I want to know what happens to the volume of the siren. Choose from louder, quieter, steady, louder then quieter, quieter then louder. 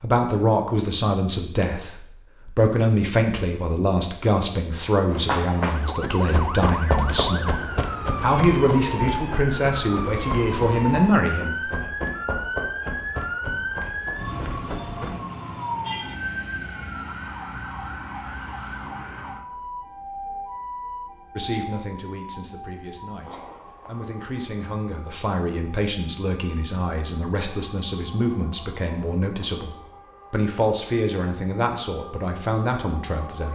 quieter.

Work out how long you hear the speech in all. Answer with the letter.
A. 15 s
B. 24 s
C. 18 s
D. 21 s
B.